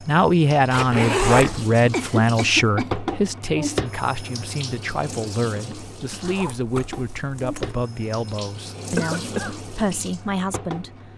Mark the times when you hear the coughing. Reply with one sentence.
The coughing can be heard from 1.9 to 2.9 s and from 8.9 to 9.6 s.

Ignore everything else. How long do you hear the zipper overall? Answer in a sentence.
The zipper can be heard for 3 seconds in total.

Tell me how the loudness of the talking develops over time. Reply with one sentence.
The volume of the talking goes down.